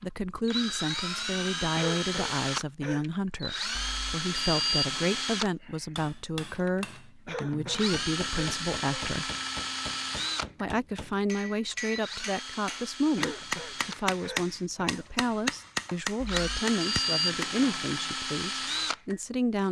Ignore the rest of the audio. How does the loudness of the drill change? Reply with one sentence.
The loudness of the drill goes down, then up.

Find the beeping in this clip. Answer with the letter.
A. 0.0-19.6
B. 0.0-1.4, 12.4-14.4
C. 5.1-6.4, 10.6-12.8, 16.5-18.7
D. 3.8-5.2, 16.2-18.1
D.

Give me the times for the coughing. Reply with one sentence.
The coughing can be heard from 1.8 to 3.0 s, from 7.2 to 9.4 s and from 13.2 to 15.3 s.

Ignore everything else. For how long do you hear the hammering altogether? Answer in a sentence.
The hammering can be heard for 12 seconds in total.